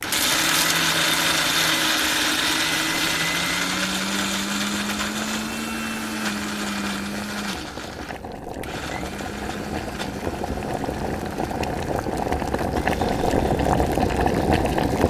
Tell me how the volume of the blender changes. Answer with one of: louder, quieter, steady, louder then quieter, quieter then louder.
quieter.